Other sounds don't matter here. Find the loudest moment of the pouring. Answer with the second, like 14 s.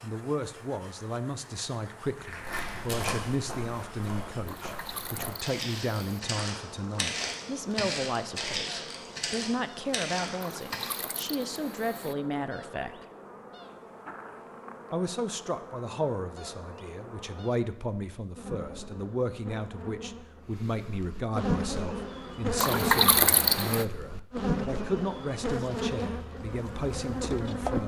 23 s.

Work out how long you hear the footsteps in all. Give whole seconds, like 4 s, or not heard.
9 s.